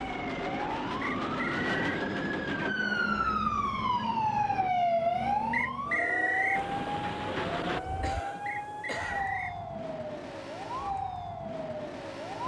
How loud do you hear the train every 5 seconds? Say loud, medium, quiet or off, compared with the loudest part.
loud, loud, off.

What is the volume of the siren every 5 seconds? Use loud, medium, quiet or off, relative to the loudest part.
loud, loud, medium.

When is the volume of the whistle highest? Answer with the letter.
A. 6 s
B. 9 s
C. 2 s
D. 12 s
A.